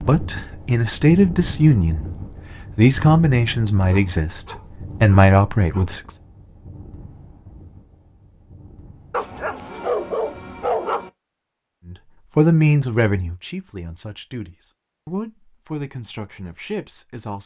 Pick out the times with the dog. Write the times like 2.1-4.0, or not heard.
3.9-5.9, 9.1-11.1.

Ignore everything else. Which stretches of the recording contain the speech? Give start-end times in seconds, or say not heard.
0.0-6.2, 11.8-17.4.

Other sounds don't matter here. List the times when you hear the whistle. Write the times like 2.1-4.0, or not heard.
not heard.